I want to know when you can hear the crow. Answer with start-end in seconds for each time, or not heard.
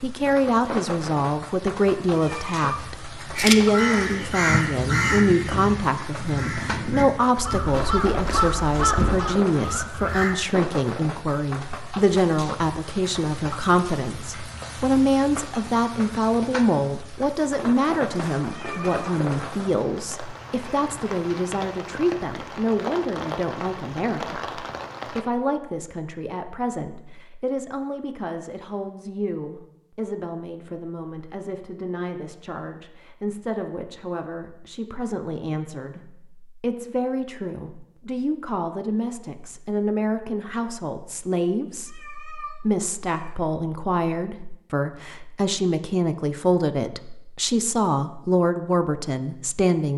3.4-10.3.